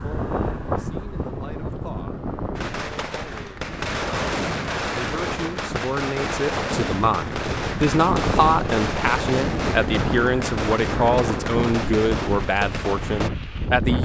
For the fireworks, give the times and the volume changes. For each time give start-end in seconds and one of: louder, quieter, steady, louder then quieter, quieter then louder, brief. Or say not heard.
2.5-13.3 steady.